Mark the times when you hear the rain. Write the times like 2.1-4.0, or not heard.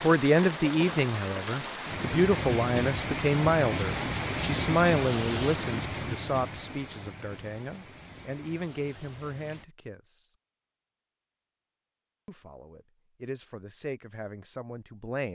0.0-9.7.